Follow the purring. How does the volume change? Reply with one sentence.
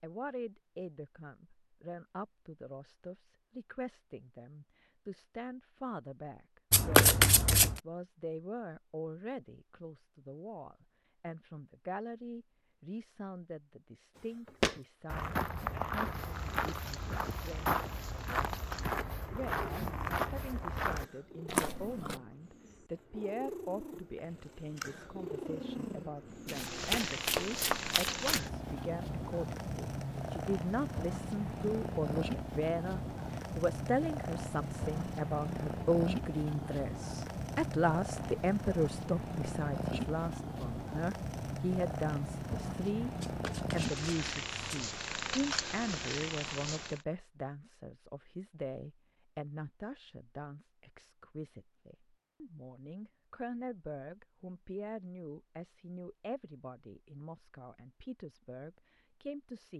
The volume of the purring goes up.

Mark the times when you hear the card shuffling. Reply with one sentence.
The card shuffling can be heard from 6.7 to 7.8 s, from 26.4 to 28.4 s and from 43.2 to 44.9 s.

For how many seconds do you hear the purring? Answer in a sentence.
You can hear the purring for 31 seconds altogether.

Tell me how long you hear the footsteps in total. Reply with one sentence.
The footsteps can be heard for 8 seconds in total.